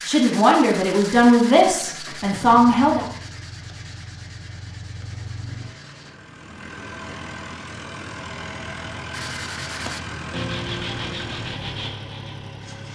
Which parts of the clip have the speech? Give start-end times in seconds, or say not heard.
0.1-3.0.